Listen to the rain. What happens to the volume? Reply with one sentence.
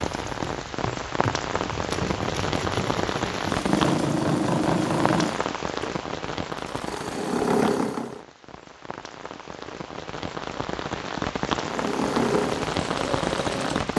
The loudness of the rain goes down, then up.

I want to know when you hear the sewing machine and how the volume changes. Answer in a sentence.
You can hear the sewing machine from 0.1 to 8.2 s, getting louder; and briefly from 11.7 to 13.9 s.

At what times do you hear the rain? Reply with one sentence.
The rain can be heard from 0.0 to 13.9 s.